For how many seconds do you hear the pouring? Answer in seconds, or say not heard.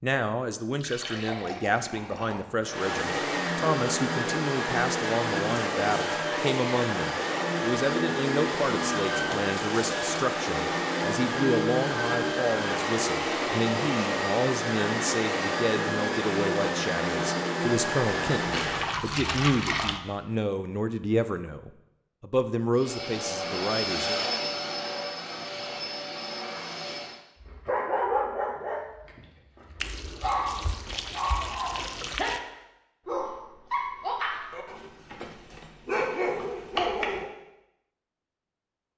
6 s.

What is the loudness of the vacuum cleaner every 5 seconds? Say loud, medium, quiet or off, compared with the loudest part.
loud, loud, loud, loud, loud, medium, off, off.